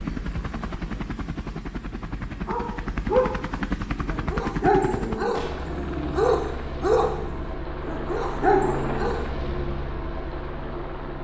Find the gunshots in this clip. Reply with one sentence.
You can hear the gunshots from 5.3 to 5.8 s.